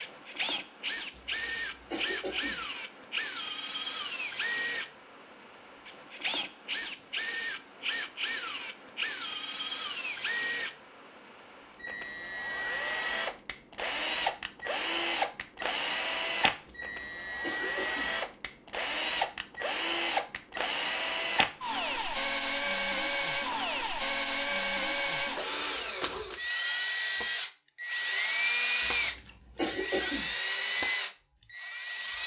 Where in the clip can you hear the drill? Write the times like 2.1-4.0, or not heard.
0.0-32.2.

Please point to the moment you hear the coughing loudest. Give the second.
30 s.